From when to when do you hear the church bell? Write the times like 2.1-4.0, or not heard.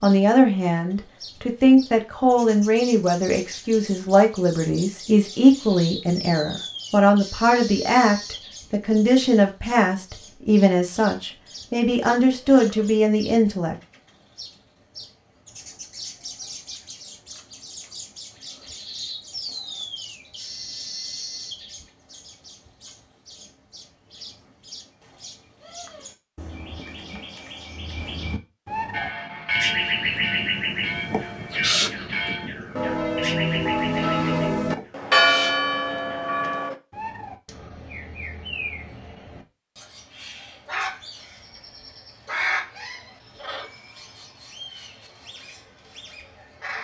28.9-36.8.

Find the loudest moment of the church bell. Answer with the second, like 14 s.
35 s.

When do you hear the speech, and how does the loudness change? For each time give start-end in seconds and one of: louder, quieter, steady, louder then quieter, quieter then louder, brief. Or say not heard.
0.0-13.8 steady.